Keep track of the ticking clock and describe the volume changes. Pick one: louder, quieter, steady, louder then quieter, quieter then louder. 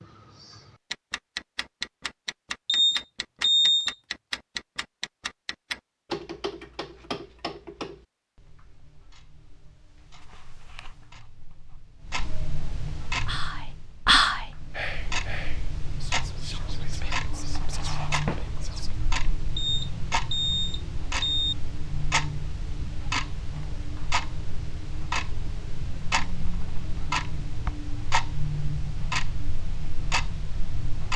quieter then louder.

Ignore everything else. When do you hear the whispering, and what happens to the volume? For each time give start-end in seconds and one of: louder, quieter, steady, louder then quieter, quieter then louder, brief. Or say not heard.
13.2-19.0 quieter.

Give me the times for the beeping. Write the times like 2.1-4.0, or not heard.
2.6-4.0, 19.6-21.6.